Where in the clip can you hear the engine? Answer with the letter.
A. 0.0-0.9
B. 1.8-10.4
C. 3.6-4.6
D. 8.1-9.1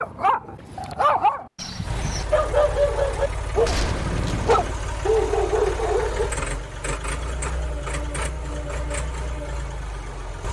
B.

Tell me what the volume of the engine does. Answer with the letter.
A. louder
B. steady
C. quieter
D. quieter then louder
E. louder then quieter
B.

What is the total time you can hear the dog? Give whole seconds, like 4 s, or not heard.
6 s.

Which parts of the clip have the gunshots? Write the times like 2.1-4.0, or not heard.
3.6-4.6.